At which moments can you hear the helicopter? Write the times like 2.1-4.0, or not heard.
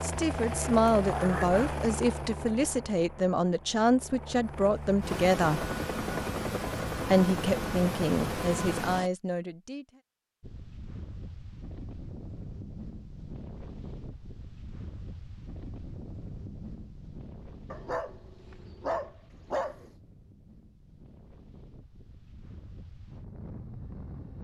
0.0-9.1.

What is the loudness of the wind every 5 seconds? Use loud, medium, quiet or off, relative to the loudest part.
off, off, loud, loud, loud.